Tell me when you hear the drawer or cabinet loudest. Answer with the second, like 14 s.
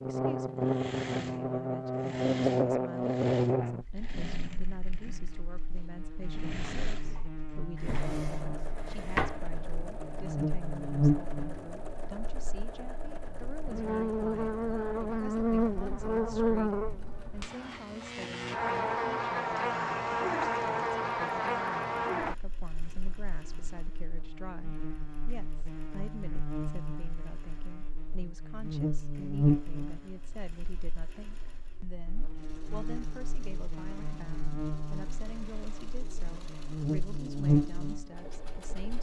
9 s.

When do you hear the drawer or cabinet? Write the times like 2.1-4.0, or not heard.
7.8-9.4.